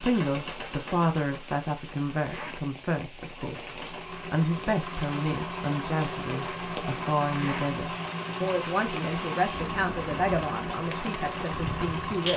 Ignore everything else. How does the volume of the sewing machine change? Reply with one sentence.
The loudness of the sewing machine goes up.